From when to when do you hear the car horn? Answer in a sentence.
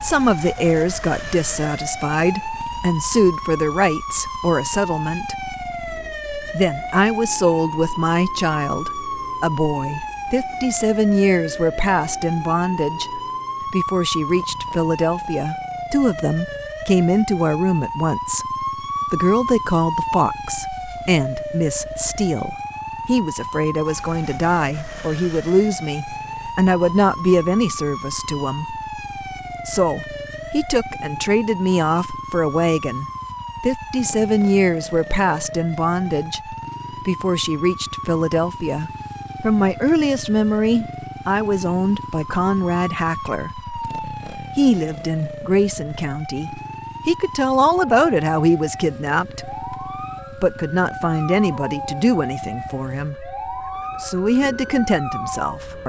You can't hear the car horn here.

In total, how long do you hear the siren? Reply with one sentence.
You can hear the siren for 56 seconds altogether.